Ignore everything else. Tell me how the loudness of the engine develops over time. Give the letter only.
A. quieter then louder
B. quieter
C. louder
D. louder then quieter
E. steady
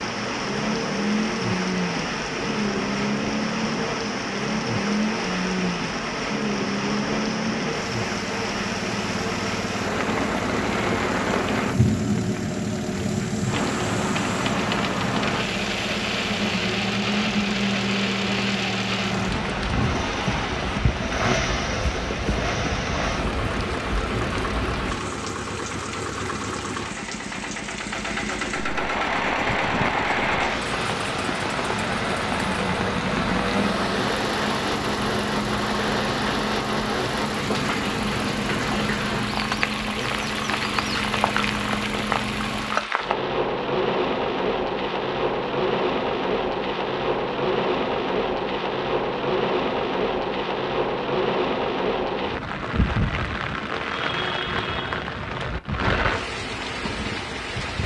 E.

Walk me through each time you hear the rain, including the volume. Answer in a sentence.
The rain can be heard from 0.0 to 57.8 s, at a steady volume.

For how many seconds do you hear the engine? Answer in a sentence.
You can hear the engine for 43 seconds altogether.